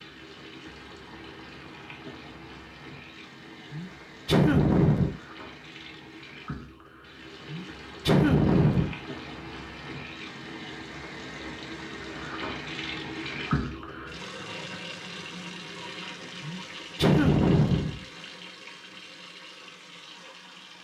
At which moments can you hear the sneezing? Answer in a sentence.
The sneezing can be heard from 3.7 to 5.2 s, from 7.5 to 8.9 s and from 16.4 to 18.0 s.